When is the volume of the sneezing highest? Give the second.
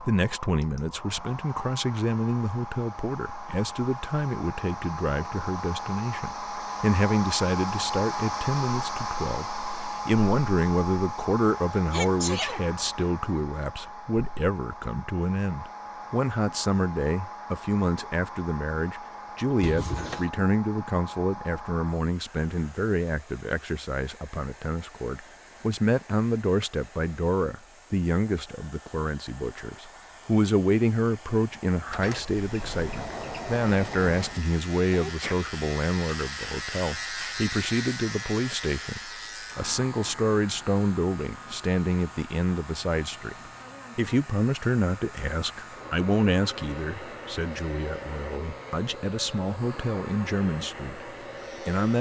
12 s.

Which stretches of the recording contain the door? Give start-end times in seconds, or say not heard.
19.6-20.3, 31.9-34.5.